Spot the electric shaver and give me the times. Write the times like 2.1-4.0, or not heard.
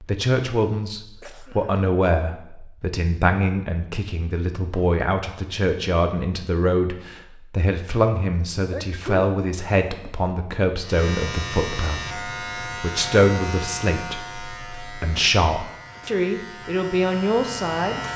10.8-18.1.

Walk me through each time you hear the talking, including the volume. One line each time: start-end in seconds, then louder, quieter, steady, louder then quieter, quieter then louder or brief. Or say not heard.
0.0-18.1 steady.